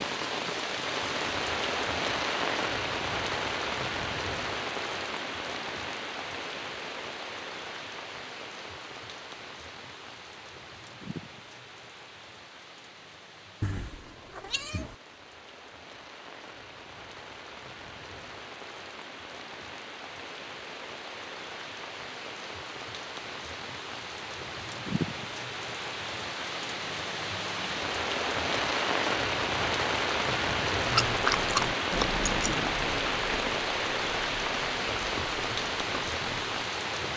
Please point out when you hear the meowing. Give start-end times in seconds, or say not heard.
13.6-14.9.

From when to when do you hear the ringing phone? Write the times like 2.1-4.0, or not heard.
not heard.